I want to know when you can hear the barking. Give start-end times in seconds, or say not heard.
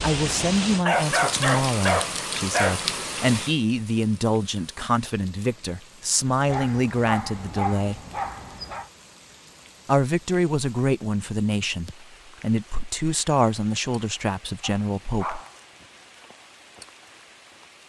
0.8-2.8, 6.5-8.9, 14.6-15.8.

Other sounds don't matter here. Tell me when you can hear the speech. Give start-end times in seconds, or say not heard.
0.0-8.0, 9.8-15.4.